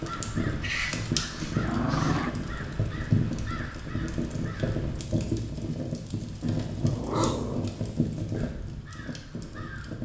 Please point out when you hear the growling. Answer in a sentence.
You can hear the growling from 0.6 to 2.4 s and from 6.8 to 7.8 s.